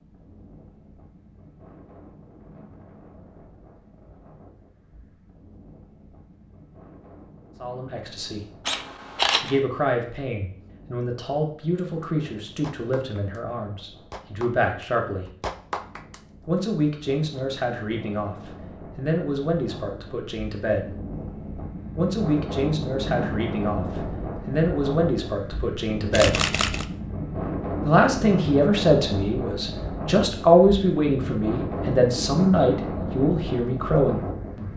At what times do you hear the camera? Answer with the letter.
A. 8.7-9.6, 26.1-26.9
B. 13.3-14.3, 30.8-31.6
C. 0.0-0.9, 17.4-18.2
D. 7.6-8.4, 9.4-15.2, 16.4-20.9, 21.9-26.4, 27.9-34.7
A.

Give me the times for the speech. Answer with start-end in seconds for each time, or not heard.
7.6-8.4, 9.4-15.2, 16.4-20.9, 21.9-26.4, 27.9-34.7.